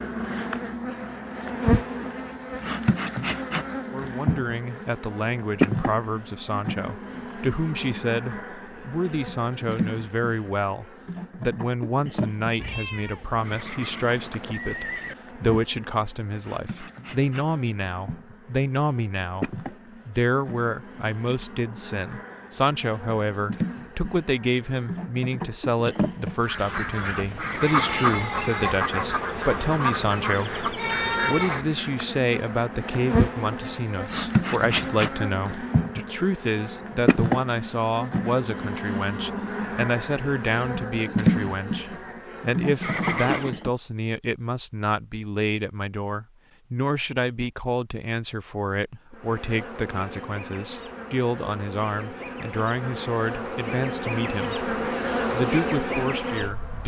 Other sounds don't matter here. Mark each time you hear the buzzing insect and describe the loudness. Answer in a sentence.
You can hear the buzzing insect from 0.0 to 43.7 s, getting quieter then louder; and from 49.1 to 56.8 s, getting louder.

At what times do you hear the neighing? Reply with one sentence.
The neighing can be heard from 13.4 to 15.2 s, from 27.4 to 28.2 s and from 42.8 to 43.5 s.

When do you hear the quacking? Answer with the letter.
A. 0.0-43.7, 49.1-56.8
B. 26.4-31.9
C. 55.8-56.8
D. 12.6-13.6
B.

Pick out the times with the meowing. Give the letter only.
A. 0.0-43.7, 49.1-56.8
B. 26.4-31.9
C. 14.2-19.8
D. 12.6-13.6
D.